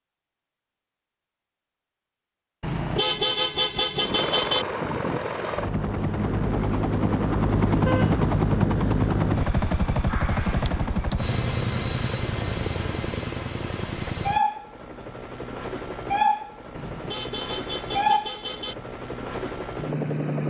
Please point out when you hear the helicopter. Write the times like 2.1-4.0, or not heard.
4.0-20.4.